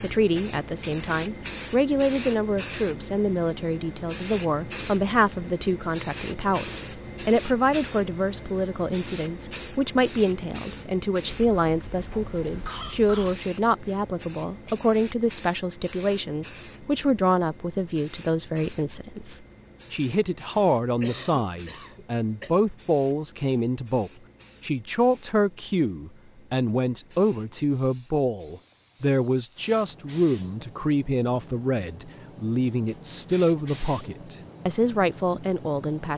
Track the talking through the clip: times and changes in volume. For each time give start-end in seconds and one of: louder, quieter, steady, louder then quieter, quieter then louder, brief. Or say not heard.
0.0-36.1 steady.